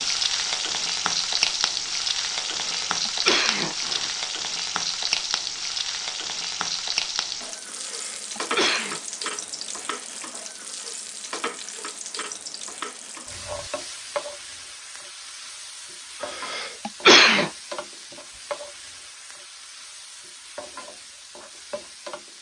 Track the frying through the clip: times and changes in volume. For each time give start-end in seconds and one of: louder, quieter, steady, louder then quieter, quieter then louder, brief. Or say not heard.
0.0-22.3 quieter.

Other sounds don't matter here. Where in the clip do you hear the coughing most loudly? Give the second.
17 s.